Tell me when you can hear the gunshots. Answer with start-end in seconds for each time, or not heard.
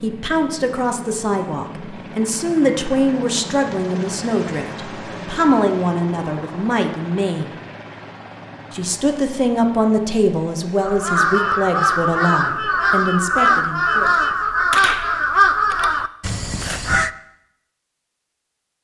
14.3-15.9.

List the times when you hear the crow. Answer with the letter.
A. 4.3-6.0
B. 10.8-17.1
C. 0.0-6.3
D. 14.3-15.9
B.